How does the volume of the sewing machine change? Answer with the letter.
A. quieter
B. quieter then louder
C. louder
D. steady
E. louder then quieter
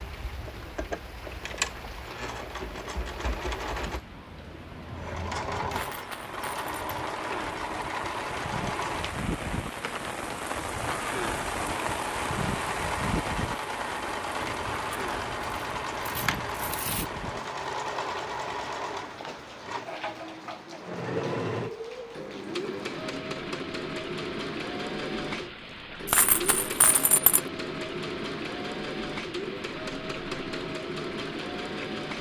D.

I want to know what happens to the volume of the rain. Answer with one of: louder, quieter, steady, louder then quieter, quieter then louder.
louder then quieter.